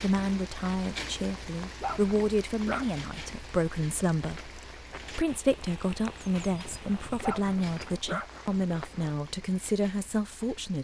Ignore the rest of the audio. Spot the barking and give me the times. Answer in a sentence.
You can hear the barking from 1.8 to 3.0 s and from 7.2 to 8.4 s.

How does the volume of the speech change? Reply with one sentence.
The loudness of the speech stays about the same.